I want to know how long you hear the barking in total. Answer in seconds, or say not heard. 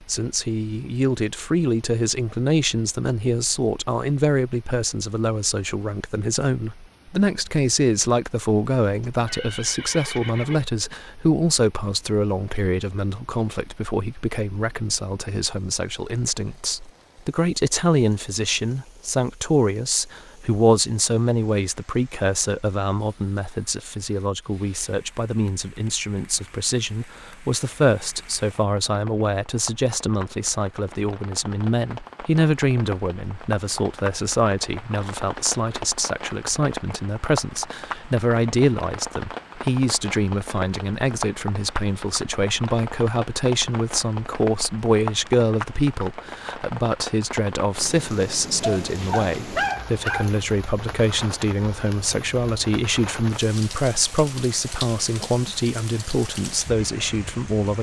2 s.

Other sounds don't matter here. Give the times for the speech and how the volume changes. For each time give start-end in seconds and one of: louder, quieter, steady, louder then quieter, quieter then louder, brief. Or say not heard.
0.0-57.7 steady.